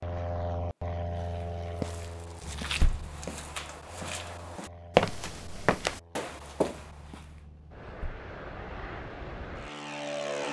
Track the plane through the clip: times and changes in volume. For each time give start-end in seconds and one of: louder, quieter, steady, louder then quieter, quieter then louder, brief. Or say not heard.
0.0-10.4 quieter then louder.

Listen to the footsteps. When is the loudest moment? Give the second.
5 s.